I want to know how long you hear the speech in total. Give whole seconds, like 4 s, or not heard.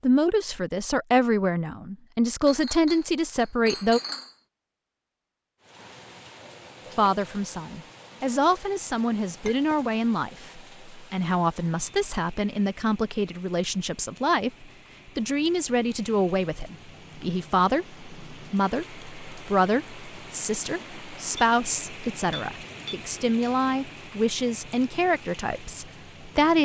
24 s.